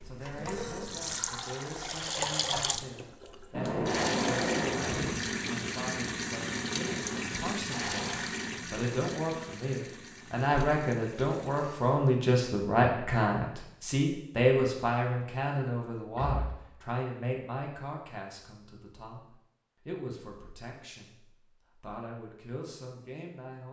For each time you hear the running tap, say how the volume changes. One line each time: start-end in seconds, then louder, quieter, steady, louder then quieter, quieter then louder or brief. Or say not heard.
0.0-12.2 quieter.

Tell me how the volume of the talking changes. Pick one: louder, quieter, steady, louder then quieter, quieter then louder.
louder then quieter.